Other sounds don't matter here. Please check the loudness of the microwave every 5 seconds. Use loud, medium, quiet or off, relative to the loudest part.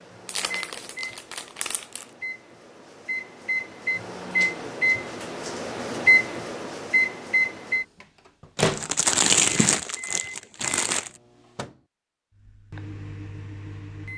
medium, loud, quiet.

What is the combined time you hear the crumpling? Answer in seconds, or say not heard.
4 s.